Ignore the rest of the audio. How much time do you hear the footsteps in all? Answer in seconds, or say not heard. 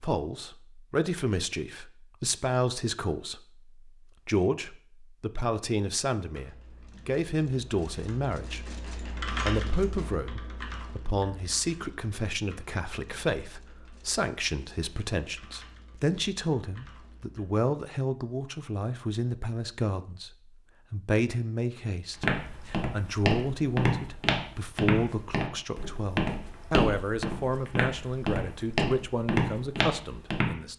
8 s.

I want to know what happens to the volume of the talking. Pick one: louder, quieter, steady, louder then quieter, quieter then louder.
steady.